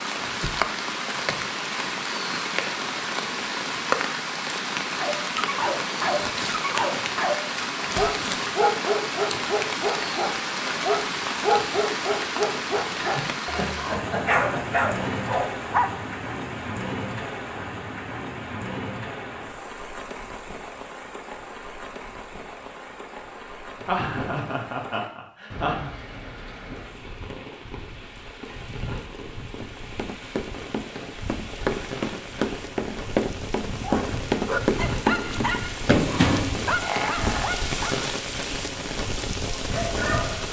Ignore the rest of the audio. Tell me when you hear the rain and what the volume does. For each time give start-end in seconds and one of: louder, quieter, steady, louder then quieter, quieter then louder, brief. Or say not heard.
0.0-40.4 quieter then louder.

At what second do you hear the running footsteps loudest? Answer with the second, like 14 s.
36 s.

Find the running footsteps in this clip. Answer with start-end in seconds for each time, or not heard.
29.6-37.5.